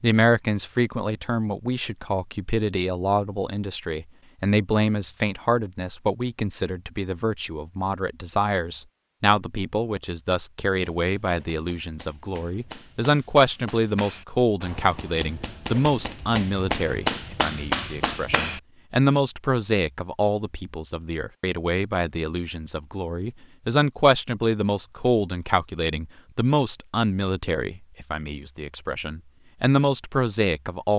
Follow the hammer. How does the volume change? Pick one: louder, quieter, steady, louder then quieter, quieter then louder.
louder.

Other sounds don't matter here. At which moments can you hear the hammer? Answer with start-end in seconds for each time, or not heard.
10.7-18.6.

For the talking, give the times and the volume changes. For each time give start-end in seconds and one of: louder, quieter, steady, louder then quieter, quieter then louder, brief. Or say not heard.
0.0-30.9 steady.